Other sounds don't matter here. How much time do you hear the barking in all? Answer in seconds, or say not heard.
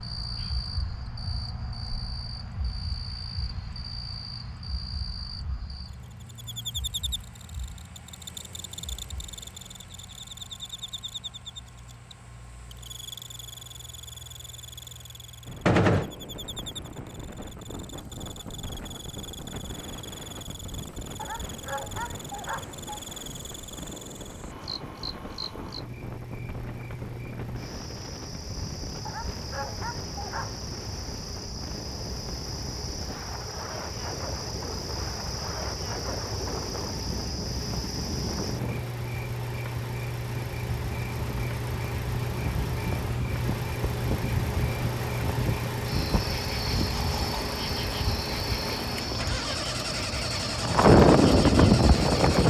3 s.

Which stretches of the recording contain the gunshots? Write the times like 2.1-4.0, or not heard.
15.7-16.1.